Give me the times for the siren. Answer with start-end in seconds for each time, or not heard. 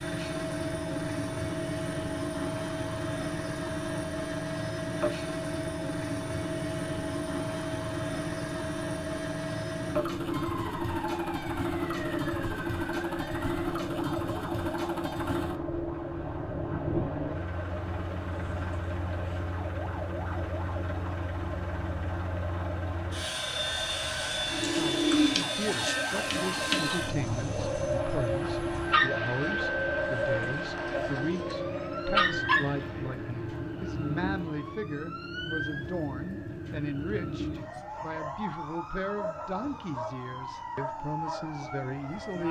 10.3-42.4.